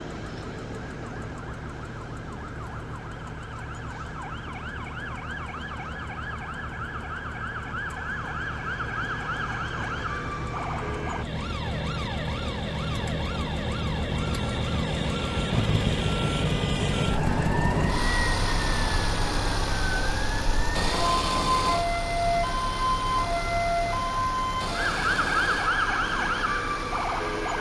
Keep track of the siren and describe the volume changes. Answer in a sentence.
The loudness of the siren goes up.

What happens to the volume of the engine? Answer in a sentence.
The loudness of the engine goes up, then down.